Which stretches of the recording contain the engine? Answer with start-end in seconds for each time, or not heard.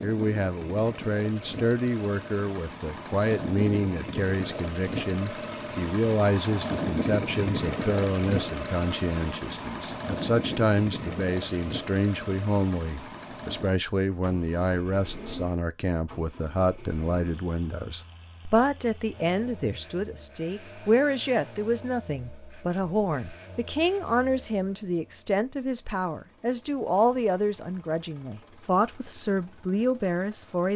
0.0-30.7.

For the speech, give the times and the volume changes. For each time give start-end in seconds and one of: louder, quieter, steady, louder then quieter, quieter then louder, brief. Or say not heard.
0.0-30.7 steady.